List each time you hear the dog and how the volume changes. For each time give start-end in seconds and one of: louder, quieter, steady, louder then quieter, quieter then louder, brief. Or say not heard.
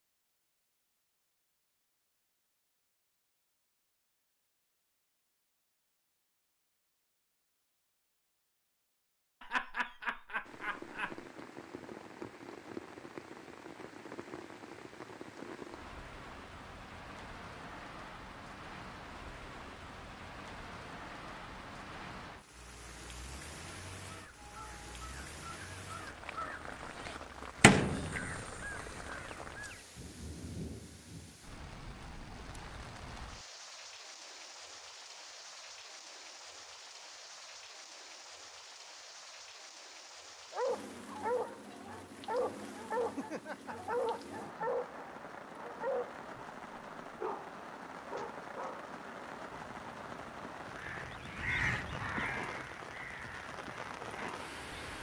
40.5-46.4 steady
47.1-48.9 brief.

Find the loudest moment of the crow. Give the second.
28 s.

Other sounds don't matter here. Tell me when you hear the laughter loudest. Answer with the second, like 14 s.
10 s.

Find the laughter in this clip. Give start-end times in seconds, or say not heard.
9.4-11.2, 43.1-44.7.